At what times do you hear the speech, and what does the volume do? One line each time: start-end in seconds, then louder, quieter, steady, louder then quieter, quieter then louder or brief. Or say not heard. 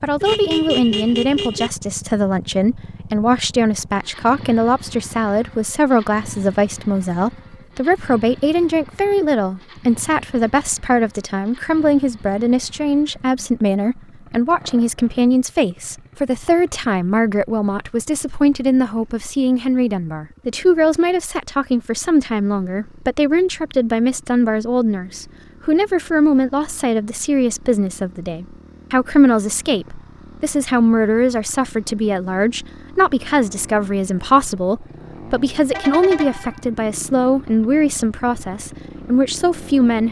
0.0-40.0 steady.